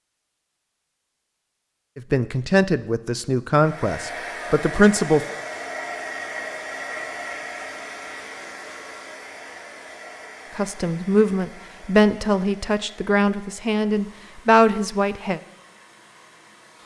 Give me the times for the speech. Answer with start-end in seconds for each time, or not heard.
1.9-5.2, 10.6-15.4.